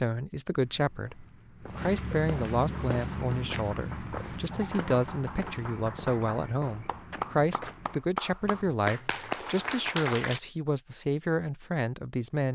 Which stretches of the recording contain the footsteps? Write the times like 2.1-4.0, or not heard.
0.5-8.7.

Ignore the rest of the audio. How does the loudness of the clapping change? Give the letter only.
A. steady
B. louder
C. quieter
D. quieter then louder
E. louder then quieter
B.